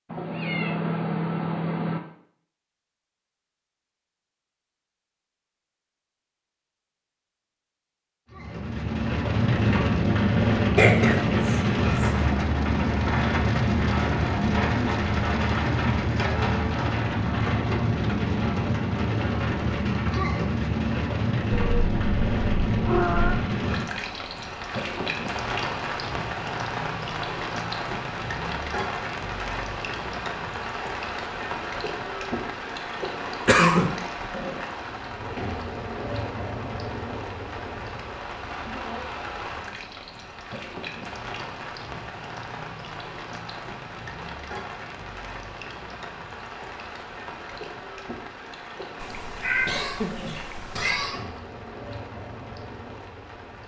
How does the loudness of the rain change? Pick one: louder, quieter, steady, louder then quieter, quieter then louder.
quieter.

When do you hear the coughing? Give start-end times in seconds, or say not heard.
10.8-12.1, 33.5-34.0, 49.6-51.2.